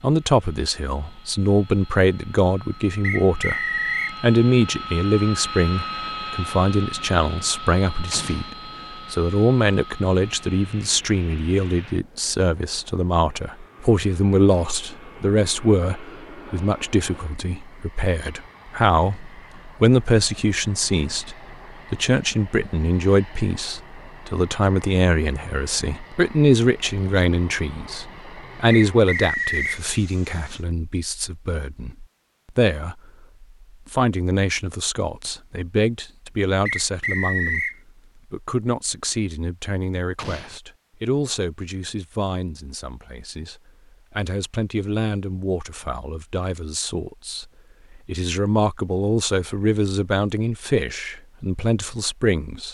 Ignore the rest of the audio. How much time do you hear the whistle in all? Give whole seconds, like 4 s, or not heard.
3 s.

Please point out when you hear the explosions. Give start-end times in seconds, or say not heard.
8.1-8.5, 40.1-40.6.